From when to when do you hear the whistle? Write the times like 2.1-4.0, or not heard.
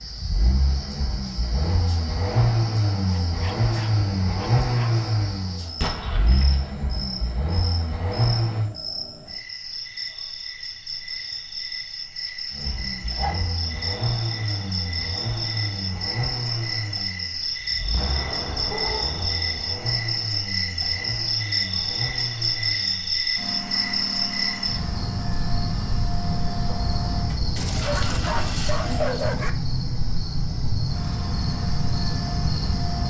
not heard.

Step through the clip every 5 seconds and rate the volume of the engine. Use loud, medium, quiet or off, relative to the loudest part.
loud, loud, medium, medium, medium, medium, medium.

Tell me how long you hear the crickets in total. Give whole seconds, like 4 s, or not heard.
33 s.